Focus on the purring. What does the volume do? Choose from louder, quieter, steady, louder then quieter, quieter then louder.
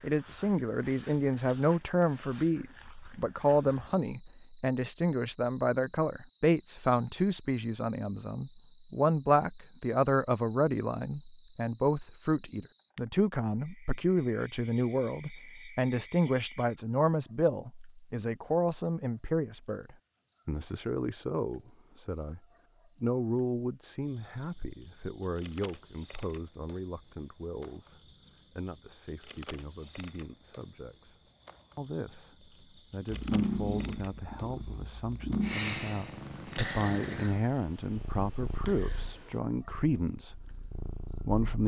quieter.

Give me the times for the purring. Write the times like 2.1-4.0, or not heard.
33.0-41.6.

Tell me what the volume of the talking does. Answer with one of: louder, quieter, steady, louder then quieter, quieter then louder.
quieter then louder.